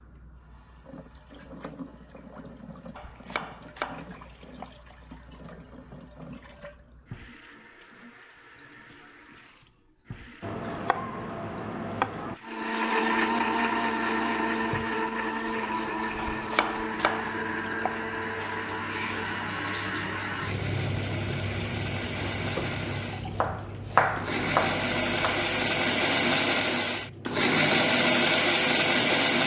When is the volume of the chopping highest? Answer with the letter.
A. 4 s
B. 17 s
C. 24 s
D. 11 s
C.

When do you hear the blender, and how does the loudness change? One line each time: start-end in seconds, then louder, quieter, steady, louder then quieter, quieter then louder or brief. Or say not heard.
12.4-29.4 quieter then louder.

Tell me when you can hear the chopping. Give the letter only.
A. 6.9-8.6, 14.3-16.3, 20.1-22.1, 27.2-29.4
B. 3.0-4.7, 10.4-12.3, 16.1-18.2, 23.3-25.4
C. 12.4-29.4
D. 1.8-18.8
B.